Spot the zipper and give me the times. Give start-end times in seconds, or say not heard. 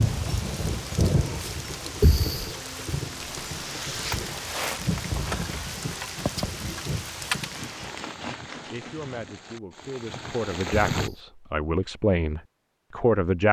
3.2-4.3, 7.5-9.3.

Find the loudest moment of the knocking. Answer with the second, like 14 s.
2 s.